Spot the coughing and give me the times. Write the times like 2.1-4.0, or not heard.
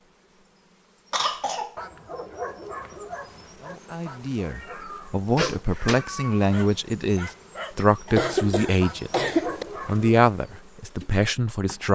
1.1-1.8, 5.3-6.0, 8.1-9.7.